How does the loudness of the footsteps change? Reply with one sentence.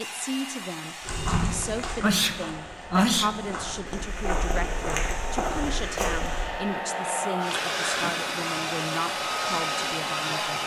The loudness of the footsteps goes down, then up.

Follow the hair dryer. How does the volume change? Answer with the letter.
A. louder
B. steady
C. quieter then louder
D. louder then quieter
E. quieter
A.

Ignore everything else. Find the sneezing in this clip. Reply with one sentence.
The sneezing can be heard from 2.0 to 3.5 s and from 7.5 to 8.3 s.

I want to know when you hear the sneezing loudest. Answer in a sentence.
The volume of the sneezing peaks at 3 seconds.